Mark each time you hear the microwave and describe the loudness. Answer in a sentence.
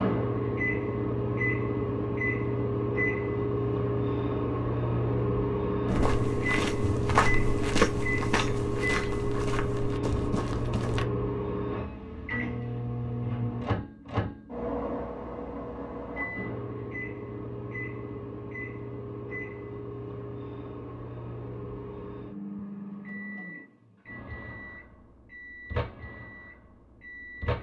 The microwave can be heard from 0.0 to 27.5 s, getting quieter.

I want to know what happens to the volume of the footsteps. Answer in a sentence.
The loudness of the footsteps goes up, then down.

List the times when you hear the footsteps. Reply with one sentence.
The footsteps can be heard from 5.8 to 11.1 s.